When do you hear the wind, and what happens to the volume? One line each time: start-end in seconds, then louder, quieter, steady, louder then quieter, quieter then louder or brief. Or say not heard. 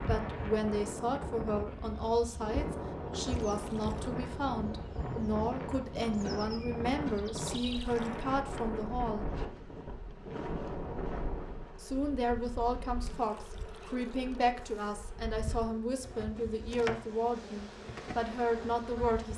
0.0-11.8 steady.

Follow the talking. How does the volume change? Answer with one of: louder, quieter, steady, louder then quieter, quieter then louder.
steady.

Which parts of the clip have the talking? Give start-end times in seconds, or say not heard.
0.1-9.2, 11.8-19.3.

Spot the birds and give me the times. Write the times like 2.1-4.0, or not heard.
not heard.